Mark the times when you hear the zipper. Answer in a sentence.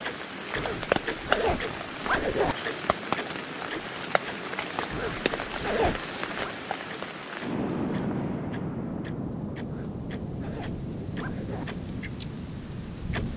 You can hear the zipper from 0.6 to 2.5 s, from 4.9 to 6.5 s and from 9.7 to 11.7 s.